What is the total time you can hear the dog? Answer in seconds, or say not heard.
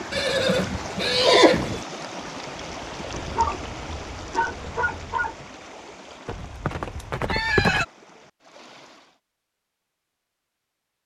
2 s.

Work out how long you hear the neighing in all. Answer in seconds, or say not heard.
3 s.